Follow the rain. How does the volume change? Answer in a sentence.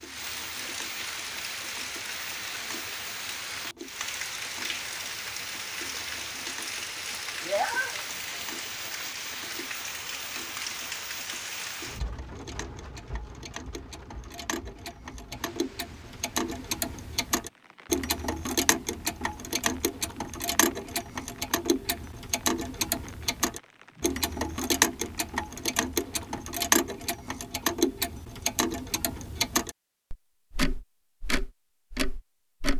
The loudness of the rain goes down.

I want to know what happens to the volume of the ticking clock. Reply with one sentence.
The volume of the ticking clock goes up.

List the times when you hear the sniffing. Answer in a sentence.
You can hear the sniffing from 7.5 to 8.1 s.